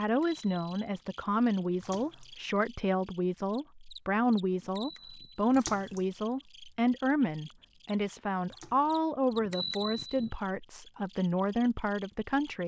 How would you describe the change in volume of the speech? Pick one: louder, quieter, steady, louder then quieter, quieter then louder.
steady.